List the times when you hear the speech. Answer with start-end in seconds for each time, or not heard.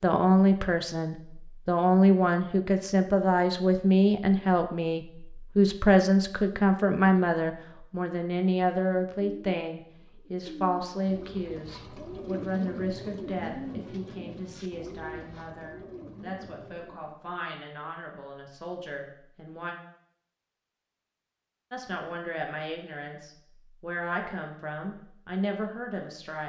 0.0-19.8, 21.7-26.4.